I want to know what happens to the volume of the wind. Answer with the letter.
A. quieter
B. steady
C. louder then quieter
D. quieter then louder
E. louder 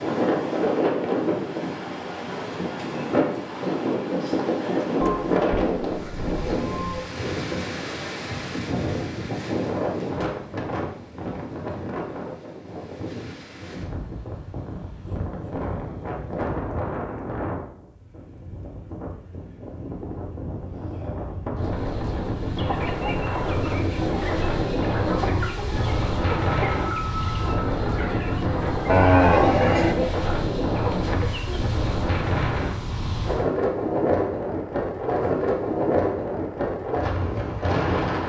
D.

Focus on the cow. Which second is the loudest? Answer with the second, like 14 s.
29 s.